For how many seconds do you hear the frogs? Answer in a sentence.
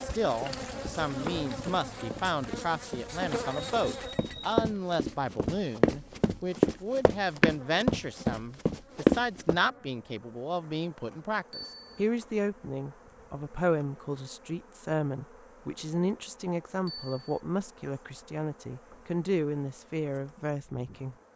The frogs can't be heard in this clip.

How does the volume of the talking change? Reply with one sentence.
The loudness of the talking stays about the same.